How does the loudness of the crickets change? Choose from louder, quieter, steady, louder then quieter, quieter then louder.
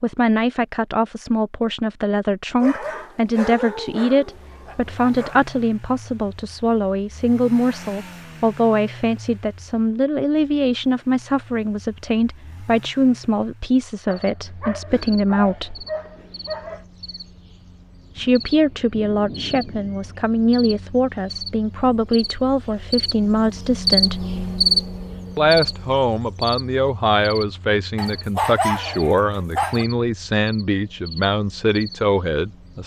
louder then quieter.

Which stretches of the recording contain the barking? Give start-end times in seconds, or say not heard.
2.6-5.4, 14.1-16.9, 27.9-29.9.